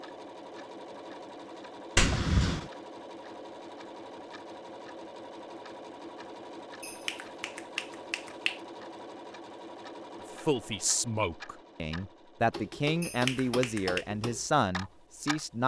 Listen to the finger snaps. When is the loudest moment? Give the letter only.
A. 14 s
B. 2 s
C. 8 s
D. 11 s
B.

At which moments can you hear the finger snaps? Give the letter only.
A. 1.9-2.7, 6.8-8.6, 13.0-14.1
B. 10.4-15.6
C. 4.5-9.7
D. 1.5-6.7
A.